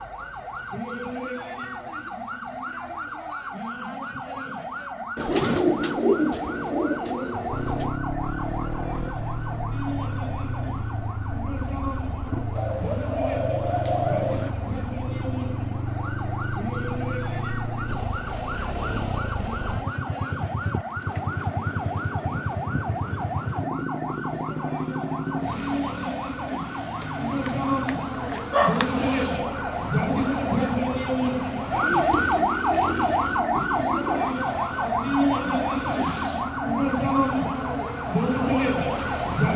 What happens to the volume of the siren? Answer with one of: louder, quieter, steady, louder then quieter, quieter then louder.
louder.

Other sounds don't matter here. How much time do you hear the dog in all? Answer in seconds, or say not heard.
2 s.